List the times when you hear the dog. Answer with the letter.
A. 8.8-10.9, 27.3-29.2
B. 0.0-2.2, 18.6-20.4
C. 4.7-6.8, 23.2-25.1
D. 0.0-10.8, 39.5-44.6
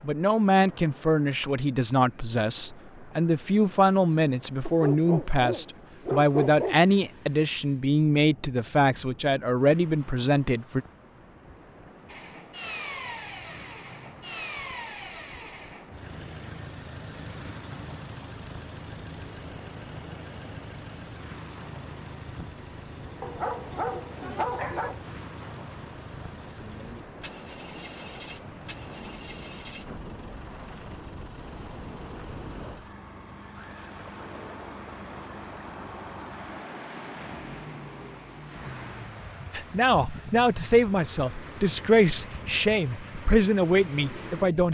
C.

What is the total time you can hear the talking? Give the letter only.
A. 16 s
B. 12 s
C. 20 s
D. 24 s
A.